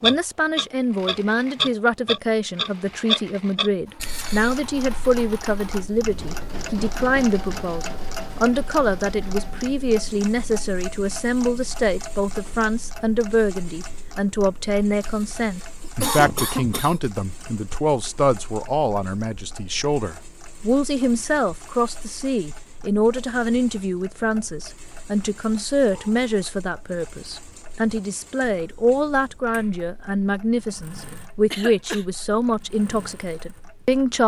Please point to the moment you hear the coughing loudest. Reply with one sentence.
The volume of the coughing peaks at 16 seconds.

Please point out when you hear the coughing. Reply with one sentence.
You can hear the coughing from 4.0 to 4.6 s, from 15.0 to 17.1 s and from 31.5 to 32.0 s.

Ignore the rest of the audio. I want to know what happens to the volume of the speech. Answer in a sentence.
The volume of the speech stays about the same.